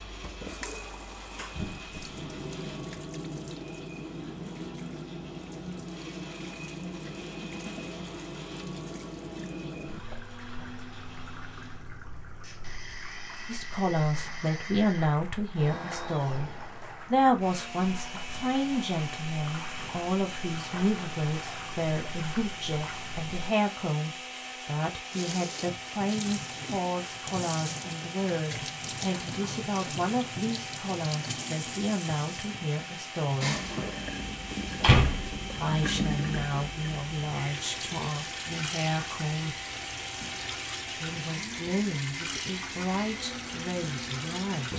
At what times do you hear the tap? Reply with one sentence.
The tap can be heard from 0.0 to 23.4 s and from 25.1 to 44.7 s.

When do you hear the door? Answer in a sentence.
You can hear the door from 34.5 to 35.4 s.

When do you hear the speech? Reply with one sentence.
You can hear the speech from 13.4 to 16.5 s, from 17.1 to 33.7 s, from 35.5 to 39.5 s and from 41.0 to 44.7 s.